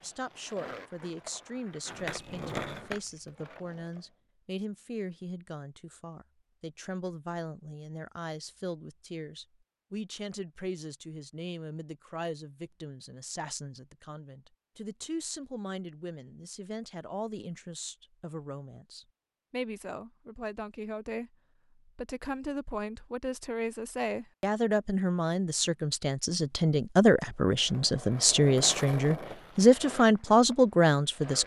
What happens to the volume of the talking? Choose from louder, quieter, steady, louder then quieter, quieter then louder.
louder.